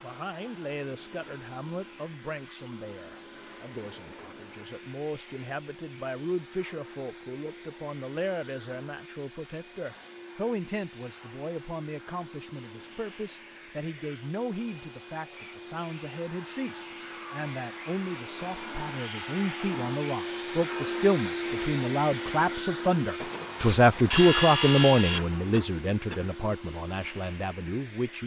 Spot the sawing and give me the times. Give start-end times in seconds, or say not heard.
23.2-25.2.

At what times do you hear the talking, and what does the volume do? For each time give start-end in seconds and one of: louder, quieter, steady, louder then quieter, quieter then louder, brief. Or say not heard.
0.0-28.2 louder.